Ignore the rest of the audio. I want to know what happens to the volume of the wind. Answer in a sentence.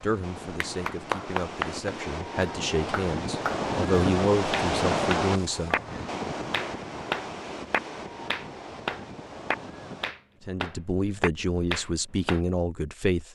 The volume of the wind goes up, then down.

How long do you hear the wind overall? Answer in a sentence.
You can hear the wind for 10 seconds altogether.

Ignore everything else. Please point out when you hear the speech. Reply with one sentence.
You can hear the speech from 0.0 to 5.8 s and from 10.4 to 13.2 s.